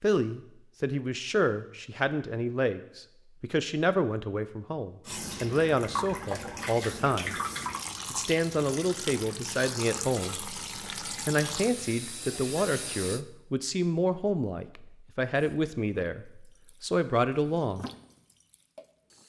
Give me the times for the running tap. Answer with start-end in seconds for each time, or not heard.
5.0-13.2, 15.3-19.2.